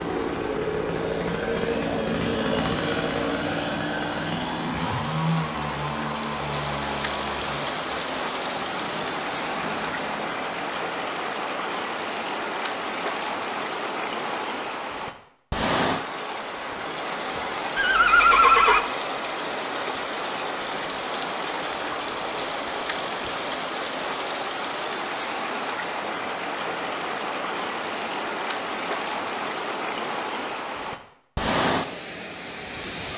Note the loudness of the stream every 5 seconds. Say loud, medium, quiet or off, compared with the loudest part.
medium, loud, loud, loud, loud, loud, loud.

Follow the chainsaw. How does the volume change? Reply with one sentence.
The loudness of the chainsaw goes down.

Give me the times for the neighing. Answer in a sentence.
The neighing can be heard from 17.8 to 18.9 s.